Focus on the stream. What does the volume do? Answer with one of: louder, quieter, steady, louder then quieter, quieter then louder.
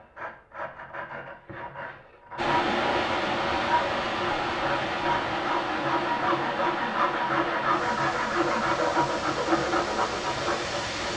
quieter.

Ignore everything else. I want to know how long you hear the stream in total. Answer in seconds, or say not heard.
9 s.